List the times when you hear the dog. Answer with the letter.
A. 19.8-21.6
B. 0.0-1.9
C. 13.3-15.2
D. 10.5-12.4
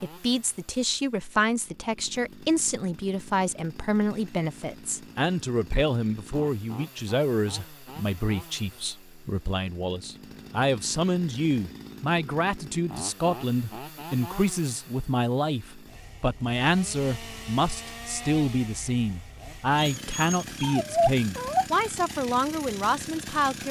A.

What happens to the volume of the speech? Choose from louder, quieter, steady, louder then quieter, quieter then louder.
steady.